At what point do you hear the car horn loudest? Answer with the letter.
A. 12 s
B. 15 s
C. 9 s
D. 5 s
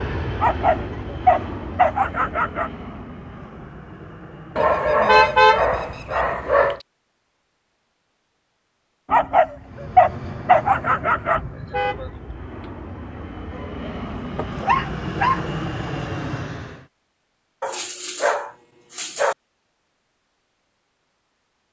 D.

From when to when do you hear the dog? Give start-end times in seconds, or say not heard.
0.4-2.7, 4.5-6.8, 9.1-11.4, 13.6-15.4, 17.6-19.4.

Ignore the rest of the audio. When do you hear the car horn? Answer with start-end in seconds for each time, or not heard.
4.9-6.2, 11.3-12.4.